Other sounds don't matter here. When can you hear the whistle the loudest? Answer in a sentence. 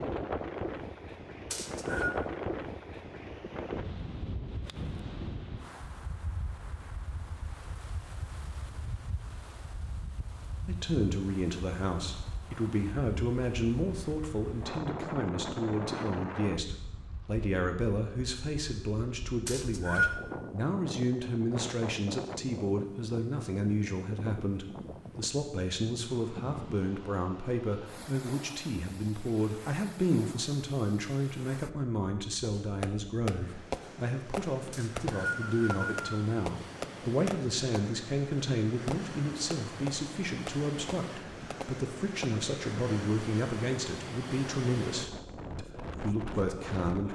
The loudest moment of the whistle is at 20 seconds.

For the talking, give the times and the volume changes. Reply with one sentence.
The talking can be heard from 10.7 to 47.0 s, at a steady volume.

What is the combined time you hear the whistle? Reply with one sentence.
You can hear the whistle for 3 seconds altogether.